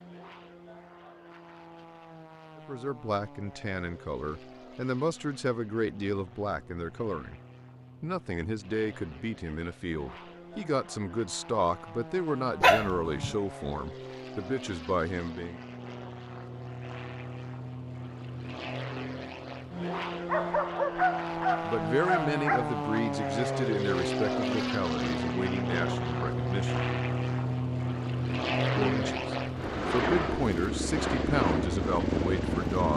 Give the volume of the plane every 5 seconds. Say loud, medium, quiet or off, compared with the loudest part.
quiet, quiet, quiet, medium, loud, loud, loud.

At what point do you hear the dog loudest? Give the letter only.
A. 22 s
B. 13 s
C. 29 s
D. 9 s
B.